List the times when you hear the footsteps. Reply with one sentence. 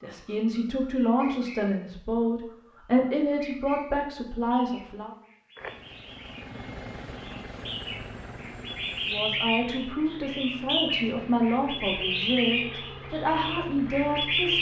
The footsteps can't be heard in this clip.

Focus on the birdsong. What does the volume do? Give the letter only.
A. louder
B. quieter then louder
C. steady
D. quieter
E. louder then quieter
A.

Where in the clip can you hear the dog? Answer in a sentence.
You can't hear the dog here.